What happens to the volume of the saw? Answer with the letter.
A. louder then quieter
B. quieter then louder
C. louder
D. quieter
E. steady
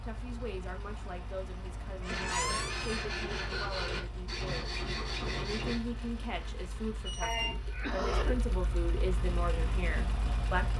D.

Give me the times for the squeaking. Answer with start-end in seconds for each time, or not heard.
2.0-3.1, 7.0-7.5.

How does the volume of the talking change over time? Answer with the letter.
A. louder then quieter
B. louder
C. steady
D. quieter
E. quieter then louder
B.